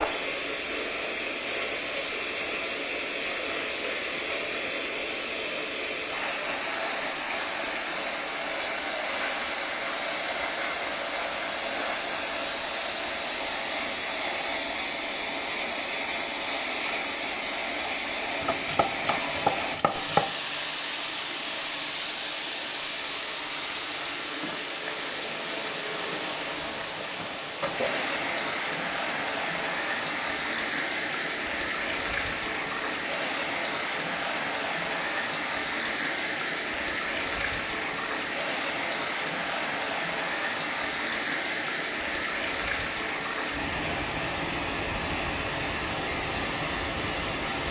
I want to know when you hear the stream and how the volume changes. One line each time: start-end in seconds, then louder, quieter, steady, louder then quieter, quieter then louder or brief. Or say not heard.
0.0-47.6 steady.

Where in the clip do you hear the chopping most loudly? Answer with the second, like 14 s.
20 s.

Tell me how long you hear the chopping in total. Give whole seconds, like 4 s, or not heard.
2 s.